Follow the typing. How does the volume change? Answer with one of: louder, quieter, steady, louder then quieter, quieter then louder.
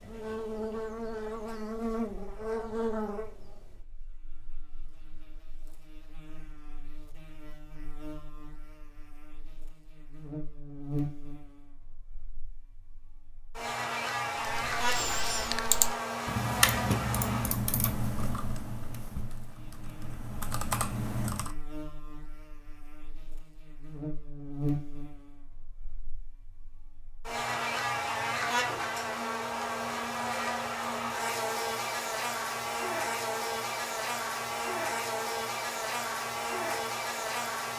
quieter then louder.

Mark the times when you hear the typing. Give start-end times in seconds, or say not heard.
14.6-21.6.